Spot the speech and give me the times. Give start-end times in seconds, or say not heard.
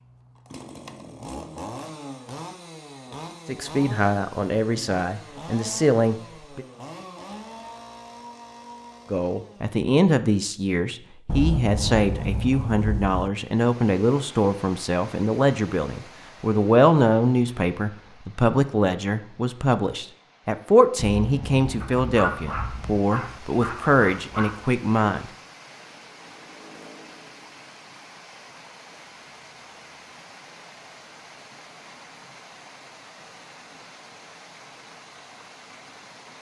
3.5-6.7, 9.1-25.3.